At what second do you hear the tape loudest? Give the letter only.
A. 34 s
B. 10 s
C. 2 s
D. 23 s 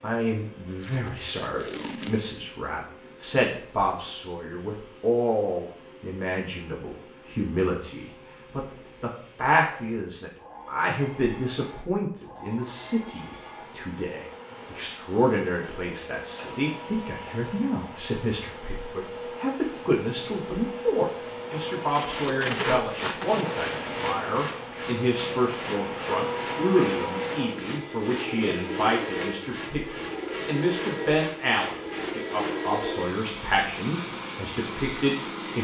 D.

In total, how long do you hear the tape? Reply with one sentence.
The tape can be heard for 3 seconds in total.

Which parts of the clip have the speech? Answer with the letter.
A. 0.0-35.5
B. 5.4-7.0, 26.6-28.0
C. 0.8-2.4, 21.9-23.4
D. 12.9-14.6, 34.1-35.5
A.